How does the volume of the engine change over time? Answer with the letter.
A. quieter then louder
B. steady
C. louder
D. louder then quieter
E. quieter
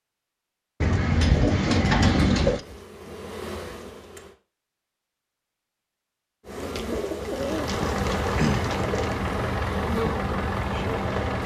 B.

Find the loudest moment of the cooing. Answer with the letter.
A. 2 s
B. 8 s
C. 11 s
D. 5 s
A.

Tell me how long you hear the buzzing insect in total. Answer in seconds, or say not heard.
7 s.